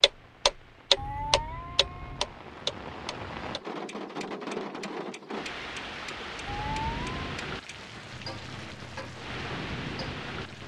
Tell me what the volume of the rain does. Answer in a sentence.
The loudness of the rain goes up.